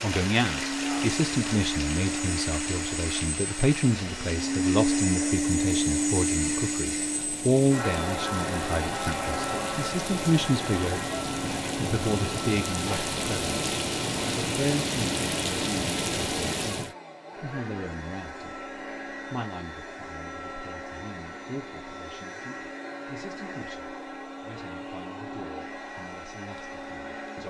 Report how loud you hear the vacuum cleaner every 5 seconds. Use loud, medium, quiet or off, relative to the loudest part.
loud, loud, medium, medium, medium, medium.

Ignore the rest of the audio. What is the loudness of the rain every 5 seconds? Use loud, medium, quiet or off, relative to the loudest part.
medium, medium, loud, loud, off, off.